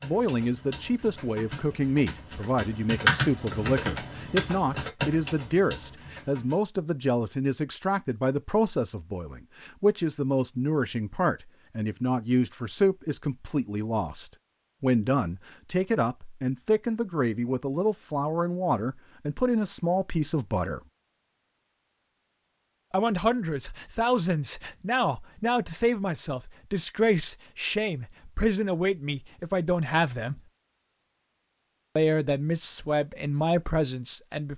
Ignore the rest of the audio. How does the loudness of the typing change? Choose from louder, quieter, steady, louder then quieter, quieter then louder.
louder then quieter.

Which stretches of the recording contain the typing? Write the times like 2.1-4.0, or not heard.
0.0-6.6.